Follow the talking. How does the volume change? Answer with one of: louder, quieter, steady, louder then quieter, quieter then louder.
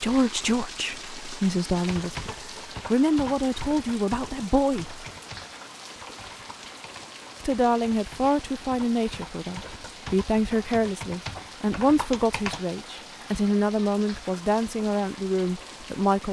steady.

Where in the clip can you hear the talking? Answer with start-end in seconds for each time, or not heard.
0.0-5.0, 7.4-16.2.